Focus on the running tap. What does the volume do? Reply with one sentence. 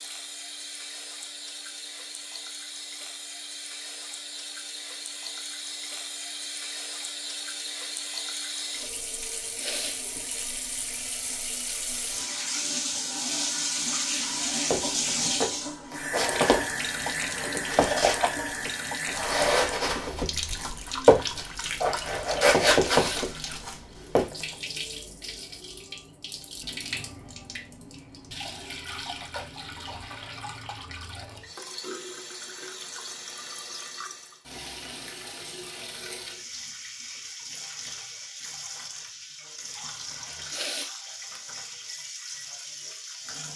The volume of the running tap goes up, then down.